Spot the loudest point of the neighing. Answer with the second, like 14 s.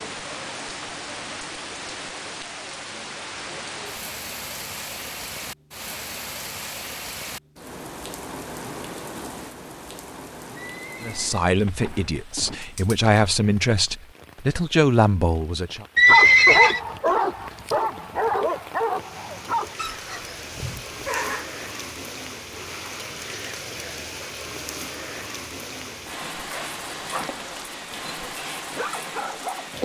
16 s.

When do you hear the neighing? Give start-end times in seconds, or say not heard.
10.6-12.6, 15.9-16.8.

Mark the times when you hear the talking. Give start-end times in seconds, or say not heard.
11.0-15.8.